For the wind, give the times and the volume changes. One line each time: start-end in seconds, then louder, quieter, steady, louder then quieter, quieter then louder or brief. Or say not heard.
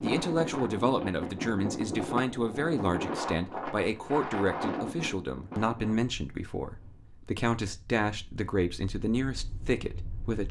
0.0-10.4 quieter then louder.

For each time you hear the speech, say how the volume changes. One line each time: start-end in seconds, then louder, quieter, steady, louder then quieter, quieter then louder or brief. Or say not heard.
0.0-10.4 steady.